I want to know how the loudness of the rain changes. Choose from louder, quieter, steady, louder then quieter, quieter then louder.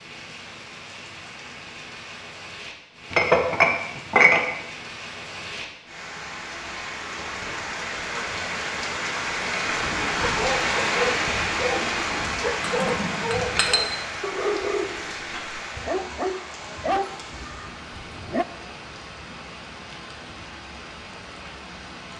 louder then quieter.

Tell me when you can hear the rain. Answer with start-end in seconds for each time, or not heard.
0.0-22.1.